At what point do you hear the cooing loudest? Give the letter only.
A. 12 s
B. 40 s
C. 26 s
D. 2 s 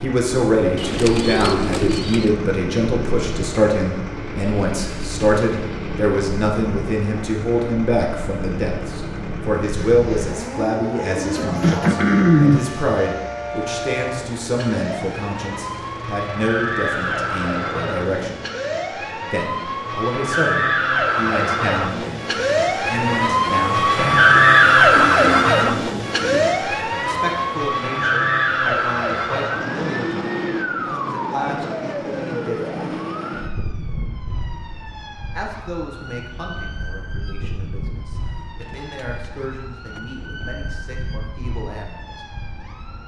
A.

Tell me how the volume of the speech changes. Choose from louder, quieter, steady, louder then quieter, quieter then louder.
quieter.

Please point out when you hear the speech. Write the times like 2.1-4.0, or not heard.
0.0-18.4, 19.3-24.2, 27.0-32.8, 35.3-42.2.